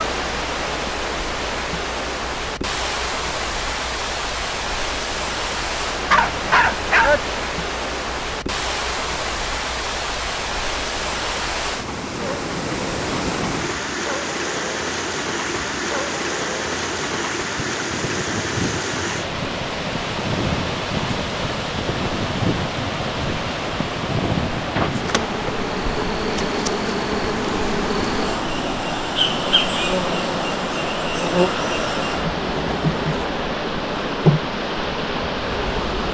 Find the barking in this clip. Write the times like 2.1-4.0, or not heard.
6.1-7.2.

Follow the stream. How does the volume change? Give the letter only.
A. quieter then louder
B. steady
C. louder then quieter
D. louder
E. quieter
B.